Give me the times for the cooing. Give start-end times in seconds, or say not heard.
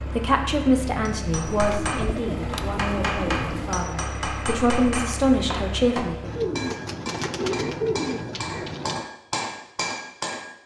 1.4-3.9, 6.2-9.1.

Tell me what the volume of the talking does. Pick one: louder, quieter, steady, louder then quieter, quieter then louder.
quieter then louder.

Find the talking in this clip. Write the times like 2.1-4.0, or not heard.
0.0-6.3.